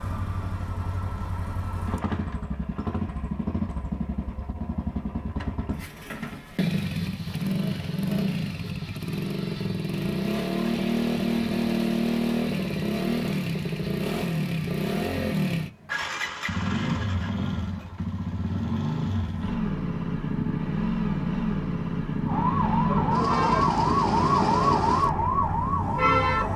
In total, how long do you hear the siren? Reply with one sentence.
The siren can be heard for 4 seconds in total.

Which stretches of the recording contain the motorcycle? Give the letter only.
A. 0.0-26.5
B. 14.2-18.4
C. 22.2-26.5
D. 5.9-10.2
A.